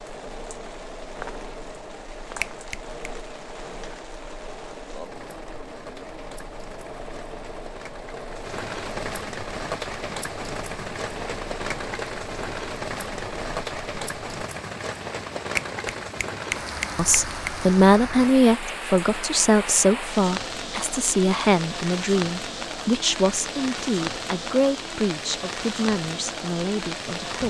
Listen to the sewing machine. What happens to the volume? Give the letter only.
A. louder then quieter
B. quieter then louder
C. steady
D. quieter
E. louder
C.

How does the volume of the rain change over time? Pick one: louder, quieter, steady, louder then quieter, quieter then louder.
louder.